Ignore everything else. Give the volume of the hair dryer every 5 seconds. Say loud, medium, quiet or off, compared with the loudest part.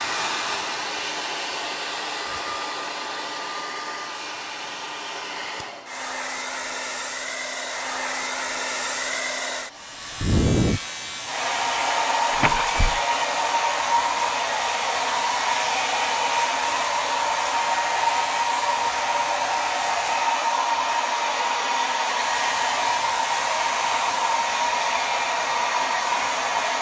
medium, medium, loud, loud, loud, loud.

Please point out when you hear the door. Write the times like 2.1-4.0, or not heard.
12.3-13.0.